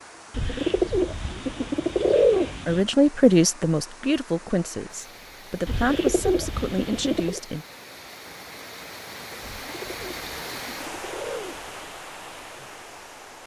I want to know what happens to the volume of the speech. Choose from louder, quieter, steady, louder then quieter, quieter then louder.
quieter then louder.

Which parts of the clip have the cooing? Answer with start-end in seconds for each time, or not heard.
0.3-2.9, 5.7-7.4, 9.4-11.8.